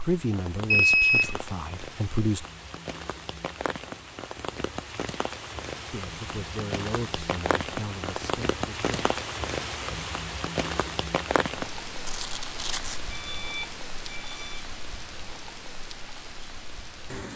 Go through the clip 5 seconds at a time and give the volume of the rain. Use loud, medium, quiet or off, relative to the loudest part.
medium, loud, loud, medium.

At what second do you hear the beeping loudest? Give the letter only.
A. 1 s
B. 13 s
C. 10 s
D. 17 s
A.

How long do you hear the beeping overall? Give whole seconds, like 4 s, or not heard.
3 s.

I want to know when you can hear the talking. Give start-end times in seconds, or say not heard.
0.0-2.5, 5.9-9.2.